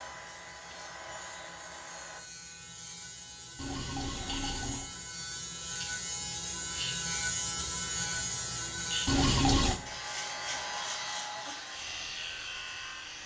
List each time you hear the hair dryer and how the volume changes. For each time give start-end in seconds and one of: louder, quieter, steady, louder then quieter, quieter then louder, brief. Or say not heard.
0.0-2.2 brief
8.2-13.2 louder then quieter.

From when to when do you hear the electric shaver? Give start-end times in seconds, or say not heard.
0.0-13.2.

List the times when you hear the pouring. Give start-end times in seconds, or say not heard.
3.5-4.9, 9.1-9.8.